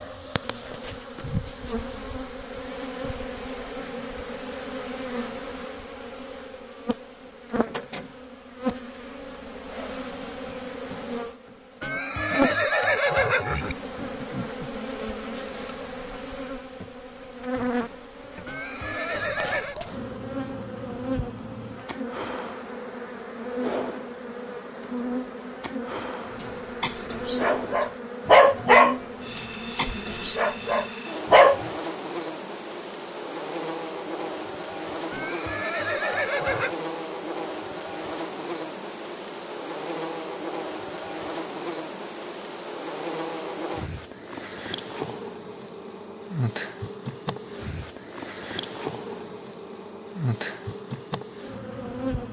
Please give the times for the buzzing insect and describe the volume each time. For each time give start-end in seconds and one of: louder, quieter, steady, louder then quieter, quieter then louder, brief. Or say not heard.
0.0-52.2 steady.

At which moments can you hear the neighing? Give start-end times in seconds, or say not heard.
11.8-13.8, 18.4-19.8, 35.1-36.8.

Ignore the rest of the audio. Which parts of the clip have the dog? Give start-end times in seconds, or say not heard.
26.4-31.7.